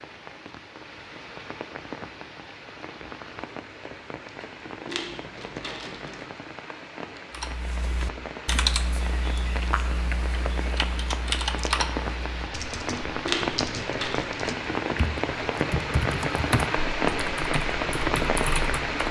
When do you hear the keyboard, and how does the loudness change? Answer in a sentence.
You can hear the keyboard from 7.3 to 18.9 s, getting quieter then louder.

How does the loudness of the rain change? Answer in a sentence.
The volume of the rain goes up.